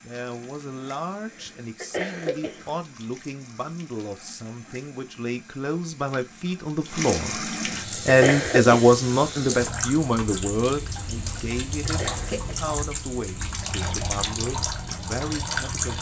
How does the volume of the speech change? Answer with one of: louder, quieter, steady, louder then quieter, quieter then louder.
louder then quieter.